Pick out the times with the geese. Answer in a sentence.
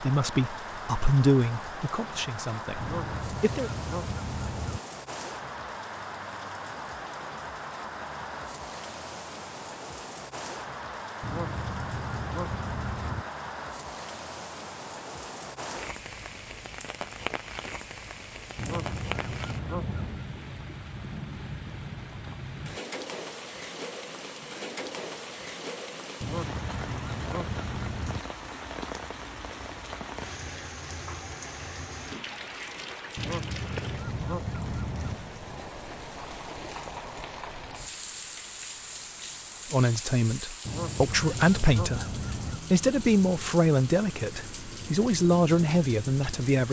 The geese can be heard from 2.8 to 4.8 s, from 11.2 to 13.2 s, from 18.6 to 20.3 s, from 26.2 to 28.2 s, from 33.1 to 35.2 s and from 40.6 to 42.6 s.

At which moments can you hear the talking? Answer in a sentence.
The talking can be heard from 0.0 to 3.7 s and from 39.7 to 46.6 s.